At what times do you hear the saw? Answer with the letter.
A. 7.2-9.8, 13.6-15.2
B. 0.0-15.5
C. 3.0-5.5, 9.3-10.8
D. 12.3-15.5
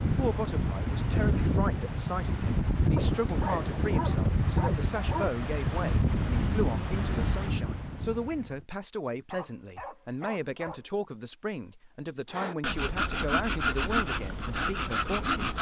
D.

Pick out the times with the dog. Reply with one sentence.
You can hear the dog from 3.0 to 5.5 s and from 9.3 to 10.8 s.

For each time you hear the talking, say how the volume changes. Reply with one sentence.
You can hear the talking from 0.0 to 15.5 s, at a steady volume.